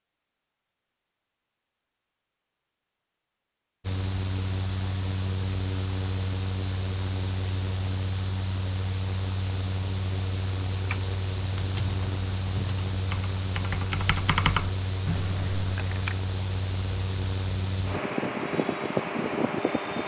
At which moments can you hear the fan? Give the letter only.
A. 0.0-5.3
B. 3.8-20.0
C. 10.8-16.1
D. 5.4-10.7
B.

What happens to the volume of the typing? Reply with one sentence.
The loudness of the typing goes up, then down.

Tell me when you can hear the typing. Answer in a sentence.
You can hear the typing from 10.8 to 16.1 s.